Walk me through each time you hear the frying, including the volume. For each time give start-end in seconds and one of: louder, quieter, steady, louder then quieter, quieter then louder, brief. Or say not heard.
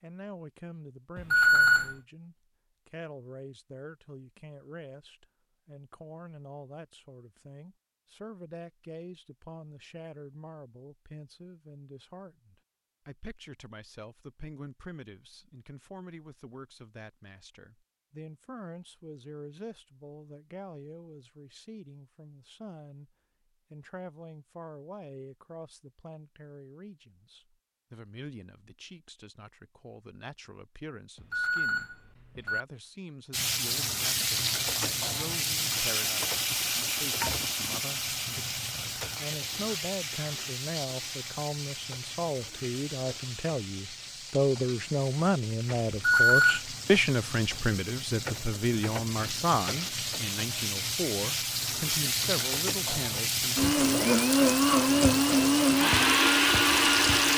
33.3-57.3 quieter then louder.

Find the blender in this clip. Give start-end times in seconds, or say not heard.
53.5-57.3.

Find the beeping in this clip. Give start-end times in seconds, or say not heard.
1.1-1.9, 31.1-32.6, 45.9-46.6.